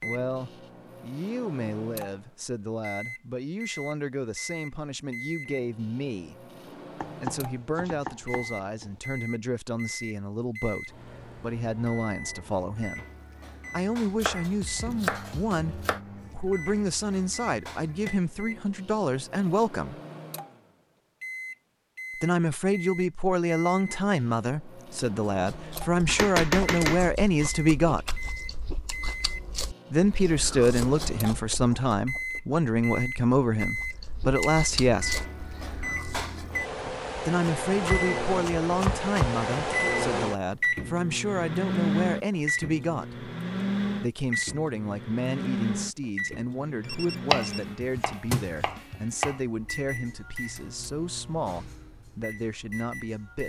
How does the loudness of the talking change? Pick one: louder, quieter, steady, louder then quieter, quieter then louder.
louder then quieter.